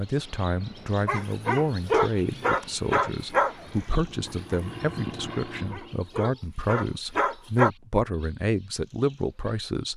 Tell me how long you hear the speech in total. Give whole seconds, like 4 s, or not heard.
10 s.